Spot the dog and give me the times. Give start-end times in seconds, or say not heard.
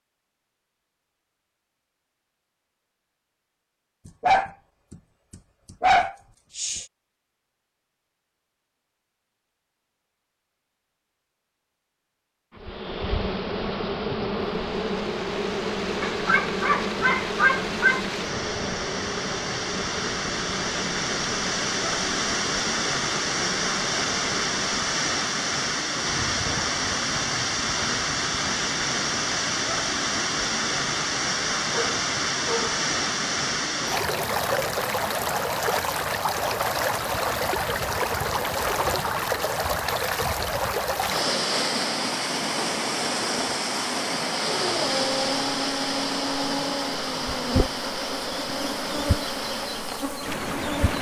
4.0-6.8, 16.0-18.0, 31.7-32.8, 44.5-47.0.